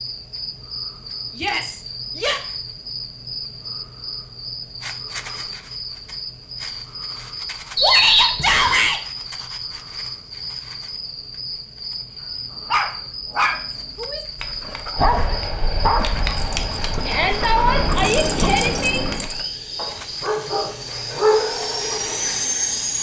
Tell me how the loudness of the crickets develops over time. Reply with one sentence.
The loudness of the crickets stays about the same.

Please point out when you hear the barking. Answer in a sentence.
The barking can be heard from 12.7 to 22.3 s.